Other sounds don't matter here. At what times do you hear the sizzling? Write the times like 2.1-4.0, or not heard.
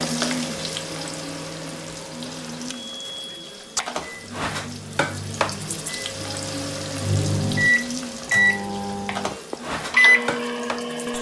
0.0-11.1.